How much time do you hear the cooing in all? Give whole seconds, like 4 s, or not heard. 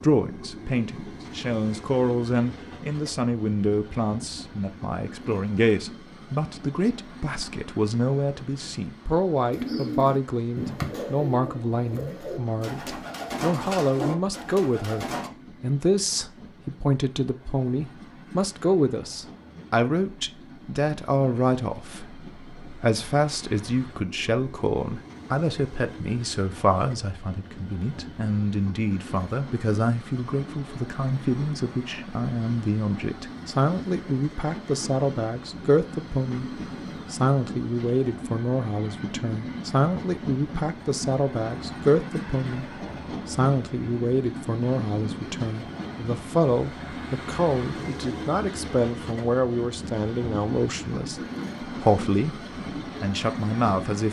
6 s.